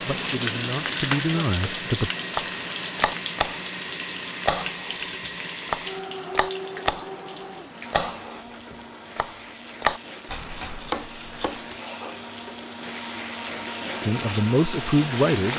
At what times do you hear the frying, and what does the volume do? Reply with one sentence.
The frying can be heard from 0.0 to 15.5 s, getting quieter then louder.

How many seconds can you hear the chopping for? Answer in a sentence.
You can hear the chopping for 7 seconds altogether.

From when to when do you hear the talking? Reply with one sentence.
The talking can be heard from 0.1 to 2.1 s and from 14.0 to 15.5 s.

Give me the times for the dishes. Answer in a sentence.
You can't hear the dishes here.